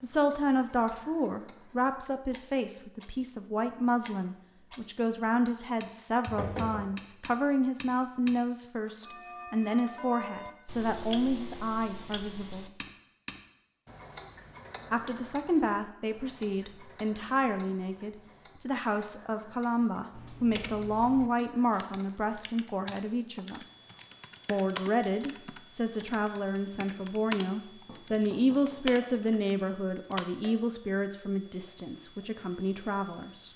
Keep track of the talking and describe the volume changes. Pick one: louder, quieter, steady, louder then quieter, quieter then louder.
steady.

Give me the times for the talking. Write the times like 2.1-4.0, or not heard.
0.0-12.7, 14.9-23.6, 24.4-33.5.